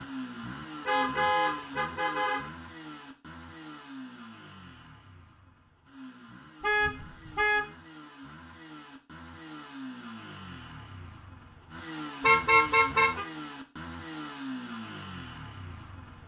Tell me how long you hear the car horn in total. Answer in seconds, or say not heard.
4 s.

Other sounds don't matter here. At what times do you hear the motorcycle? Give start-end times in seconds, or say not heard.
0.0-16.2.